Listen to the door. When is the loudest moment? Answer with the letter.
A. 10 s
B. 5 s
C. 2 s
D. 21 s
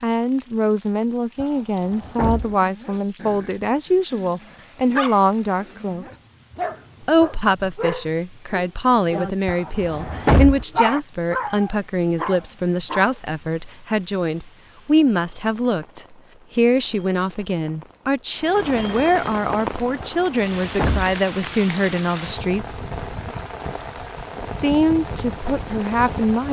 A.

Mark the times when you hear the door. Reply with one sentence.
You can hear the door from 1.4 to 2.5 s, from 9.4 to 10.7 s and from 20.0 to 21.1 s.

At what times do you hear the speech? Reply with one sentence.
You can hear the speech from 0.0 to 6.0 s, from 7.0 to 22.9 s and from 24.4 to 26.4 s.